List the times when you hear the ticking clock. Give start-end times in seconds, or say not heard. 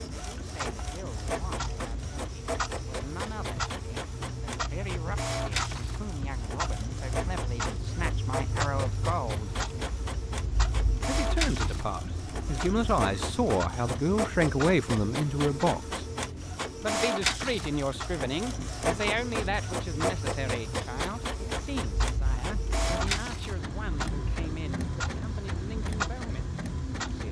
0.0-27.2.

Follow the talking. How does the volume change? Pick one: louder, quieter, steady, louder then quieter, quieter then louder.
louder then quieter.